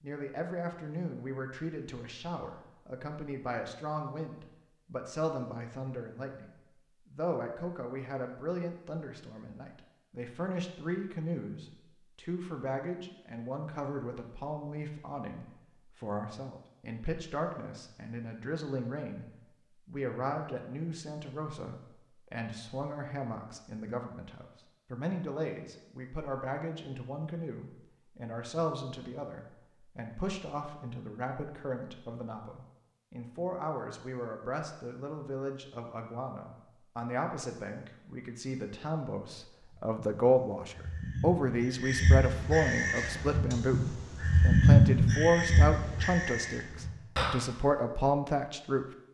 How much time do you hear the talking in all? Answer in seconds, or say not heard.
49 s.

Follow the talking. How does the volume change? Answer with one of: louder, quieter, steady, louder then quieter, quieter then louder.
louder.